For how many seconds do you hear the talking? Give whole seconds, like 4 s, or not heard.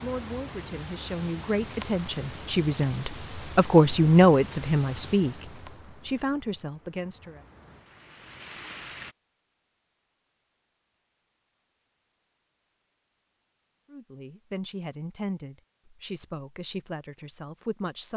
12 s.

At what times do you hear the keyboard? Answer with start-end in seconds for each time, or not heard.
not heard.